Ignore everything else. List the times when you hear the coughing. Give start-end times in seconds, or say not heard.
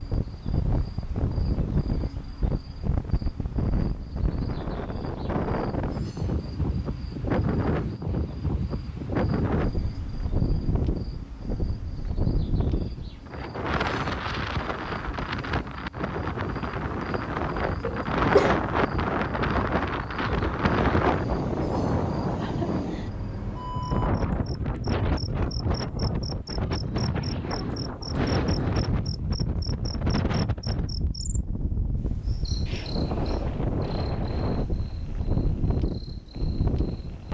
17.8-18.6.